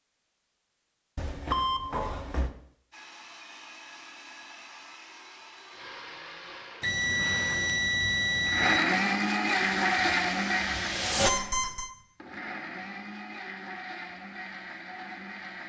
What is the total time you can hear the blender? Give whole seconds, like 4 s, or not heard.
13 s.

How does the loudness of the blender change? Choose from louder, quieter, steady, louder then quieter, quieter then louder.
louder then quieter.